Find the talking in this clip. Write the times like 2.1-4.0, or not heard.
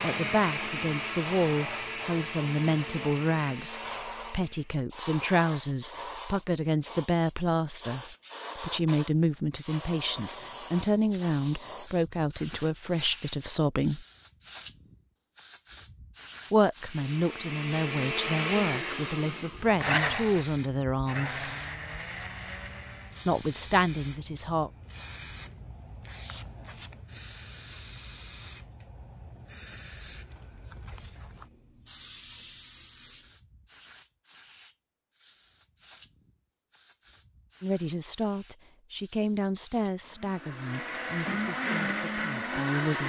0.0-14.1, 16.5-21.5, 23.2-24.7, 37.6-43.0.